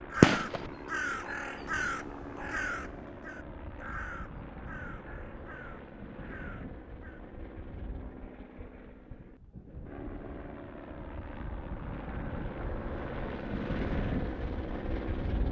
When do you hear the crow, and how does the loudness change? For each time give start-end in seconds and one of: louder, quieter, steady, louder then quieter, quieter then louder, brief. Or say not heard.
0.1-7.2 quieter.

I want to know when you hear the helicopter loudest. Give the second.
14 s.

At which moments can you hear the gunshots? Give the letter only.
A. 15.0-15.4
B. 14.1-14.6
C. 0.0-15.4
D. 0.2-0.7
D.